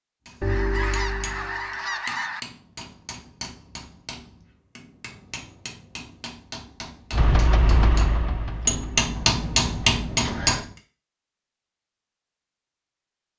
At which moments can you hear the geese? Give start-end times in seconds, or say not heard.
0.4-2.4.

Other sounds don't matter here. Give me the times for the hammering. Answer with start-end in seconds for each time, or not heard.
0.2-10.7.